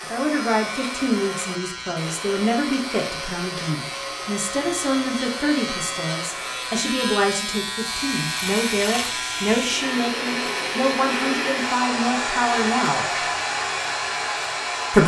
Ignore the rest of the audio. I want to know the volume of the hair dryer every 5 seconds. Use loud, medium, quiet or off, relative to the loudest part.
medium, medium, loud.